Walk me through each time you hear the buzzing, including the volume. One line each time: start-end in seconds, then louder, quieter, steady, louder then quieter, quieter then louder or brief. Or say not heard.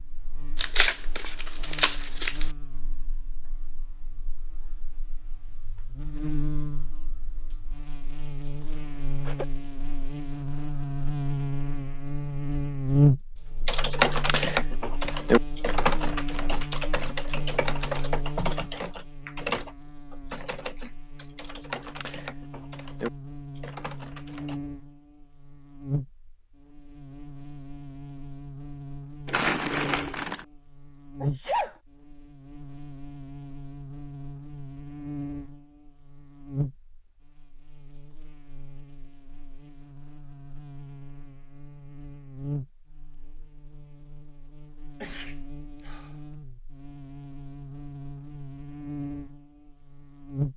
0.0-50.5 louder then quieter.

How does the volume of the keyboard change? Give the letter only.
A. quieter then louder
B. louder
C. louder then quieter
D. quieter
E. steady
D.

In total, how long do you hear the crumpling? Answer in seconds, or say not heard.
3 s.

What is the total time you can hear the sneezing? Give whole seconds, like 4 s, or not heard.
2 s.